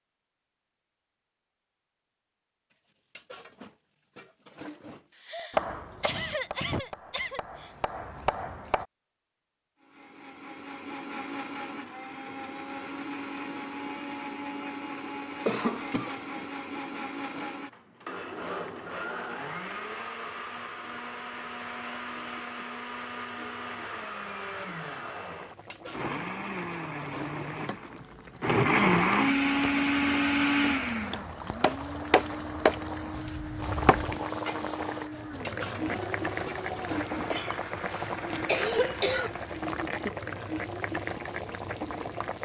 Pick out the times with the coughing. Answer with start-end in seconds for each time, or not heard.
5.2-7.7, 15.4-16.1, 37.3-39.3.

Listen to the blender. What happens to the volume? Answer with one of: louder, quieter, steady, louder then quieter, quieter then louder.
louder then quieter.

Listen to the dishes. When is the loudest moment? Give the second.
37 s.